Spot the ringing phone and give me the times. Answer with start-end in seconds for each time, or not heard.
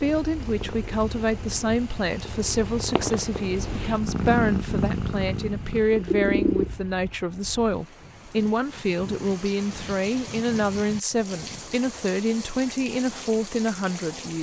not heard.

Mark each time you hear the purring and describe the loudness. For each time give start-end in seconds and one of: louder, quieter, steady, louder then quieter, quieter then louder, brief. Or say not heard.
0.0-7.0 louder.